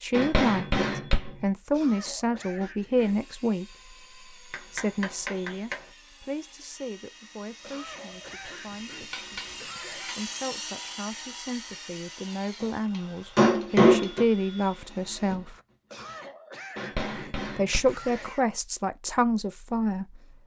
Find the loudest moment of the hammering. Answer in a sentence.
The loudest moment of the hammering is at 14 seconds.